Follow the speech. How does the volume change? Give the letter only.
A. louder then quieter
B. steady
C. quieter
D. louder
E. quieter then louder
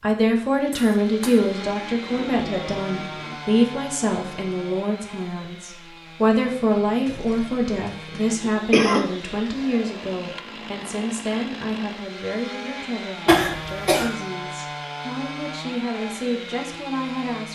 C.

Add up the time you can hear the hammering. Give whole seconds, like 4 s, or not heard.
not heard.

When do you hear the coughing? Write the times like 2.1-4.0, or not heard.
0.7-1.4, 7.0-9.1, 13.2-14.1.